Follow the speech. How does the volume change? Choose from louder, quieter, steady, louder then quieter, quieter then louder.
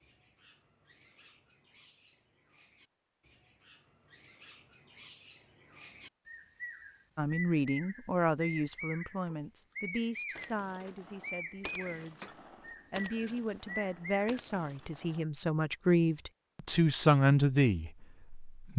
quieter then louder.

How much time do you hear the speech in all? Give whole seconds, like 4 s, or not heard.
11 s.